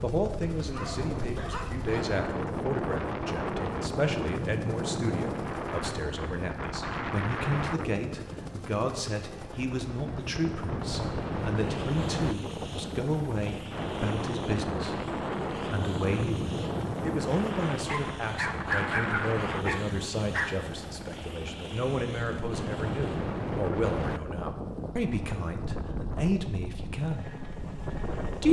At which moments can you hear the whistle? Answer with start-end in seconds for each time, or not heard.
not heard.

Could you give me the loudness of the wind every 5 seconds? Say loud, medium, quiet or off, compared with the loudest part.
loud, loud, loud, loud, loud, medium.